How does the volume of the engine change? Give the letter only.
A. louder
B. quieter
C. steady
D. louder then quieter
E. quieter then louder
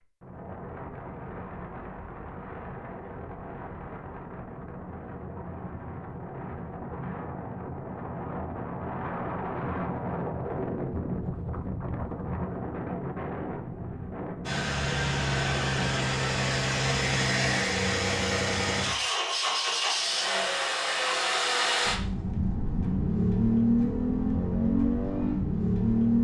C.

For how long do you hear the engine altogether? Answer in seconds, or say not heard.
12 s.